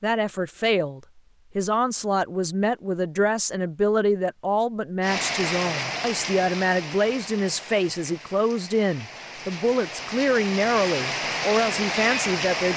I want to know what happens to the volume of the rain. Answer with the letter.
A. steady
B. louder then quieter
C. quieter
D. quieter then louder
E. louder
D.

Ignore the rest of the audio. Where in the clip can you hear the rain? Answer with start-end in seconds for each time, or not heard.
5.0-12.7.